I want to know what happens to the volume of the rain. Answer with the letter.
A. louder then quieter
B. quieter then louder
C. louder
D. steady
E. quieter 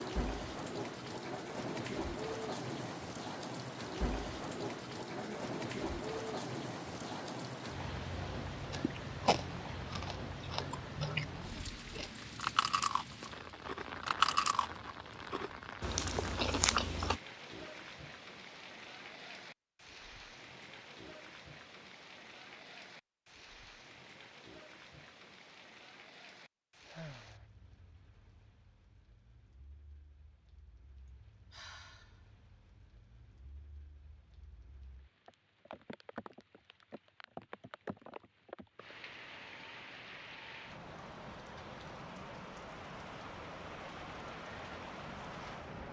B.